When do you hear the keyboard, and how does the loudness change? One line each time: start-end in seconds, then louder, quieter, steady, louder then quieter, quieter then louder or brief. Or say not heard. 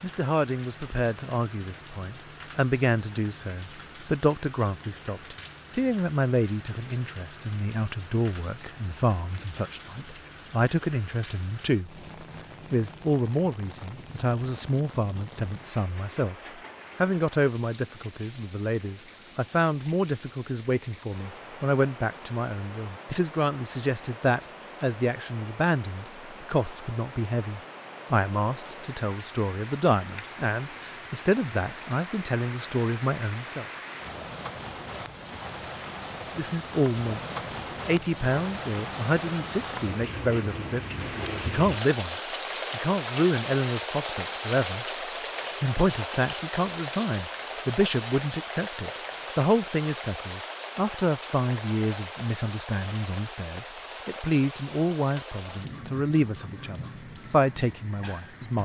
not heard.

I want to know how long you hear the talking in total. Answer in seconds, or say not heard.
54 s.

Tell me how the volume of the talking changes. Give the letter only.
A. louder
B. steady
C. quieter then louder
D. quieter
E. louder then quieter
B.